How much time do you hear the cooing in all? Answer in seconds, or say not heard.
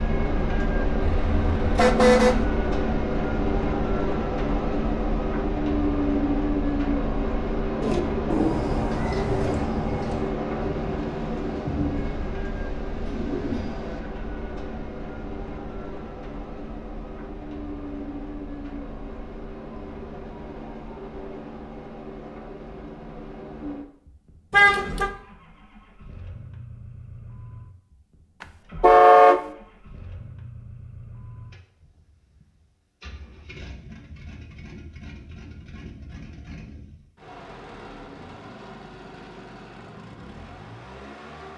6 s.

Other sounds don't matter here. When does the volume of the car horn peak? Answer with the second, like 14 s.
29 s.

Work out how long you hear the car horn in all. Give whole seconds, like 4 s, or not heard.
3 s.